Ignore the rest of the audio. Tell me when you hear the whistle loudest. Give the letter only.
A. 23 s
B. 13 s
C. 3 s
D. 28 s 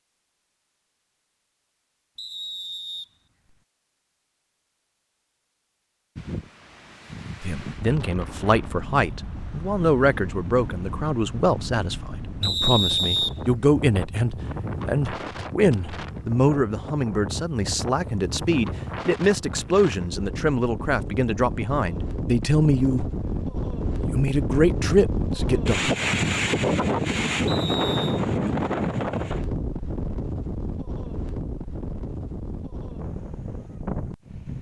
B.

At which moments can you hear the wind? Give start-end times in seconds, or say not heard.
6.2-34.5.